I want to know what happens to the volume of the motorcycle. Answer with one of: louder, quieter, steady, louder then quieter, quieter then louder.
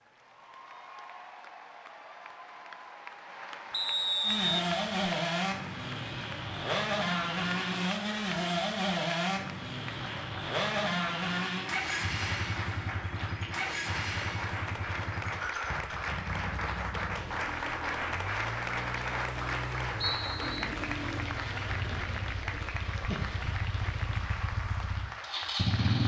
quieter.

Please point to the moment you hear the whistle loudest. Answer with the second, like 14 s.
4 s.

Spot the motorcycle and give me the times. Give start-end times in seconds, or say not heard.
4.2-26.0.